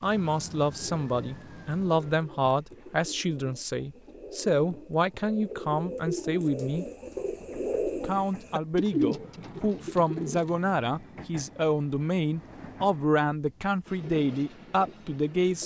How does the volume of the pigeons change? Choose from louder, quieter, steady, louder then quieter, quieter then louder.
louder.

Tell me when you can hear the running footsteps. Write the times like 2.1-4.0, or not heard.
not heard.